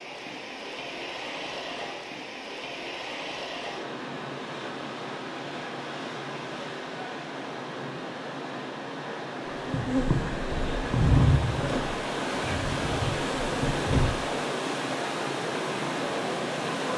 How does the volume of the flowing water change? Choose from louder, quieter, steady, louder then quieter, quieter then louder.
louder.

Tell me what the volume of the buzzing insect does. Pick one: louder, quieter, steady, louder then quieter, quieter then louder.
louder then quieter.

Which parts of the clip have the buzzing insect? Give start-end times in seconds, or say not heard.
9.6-14.2.